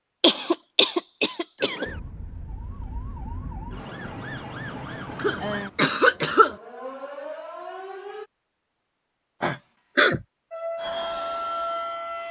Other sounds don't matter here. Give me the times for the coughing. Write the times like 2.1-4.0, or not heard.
0.2-1.9, 5.2-6.5, 9.4-10.2.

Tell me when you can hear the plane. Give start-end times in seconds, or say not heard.
10.8-12.2.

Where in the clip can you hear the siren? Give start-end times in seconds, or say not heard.
1.6-8.2, 10.5-12.2.